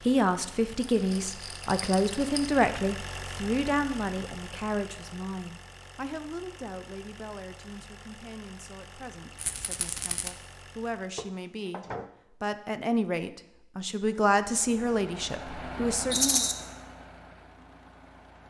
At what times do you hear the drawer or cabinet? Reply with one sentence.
The drawer or cabinet can be heard from 11.2 to 12.1 s.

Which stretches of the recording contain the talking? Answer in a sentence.
The talking can be heard from 0.0 to 16.4 s.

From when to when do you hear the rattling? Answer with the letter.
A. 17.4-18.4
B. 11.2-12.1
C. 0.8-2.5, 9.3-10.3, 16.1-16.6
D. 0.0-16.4
C.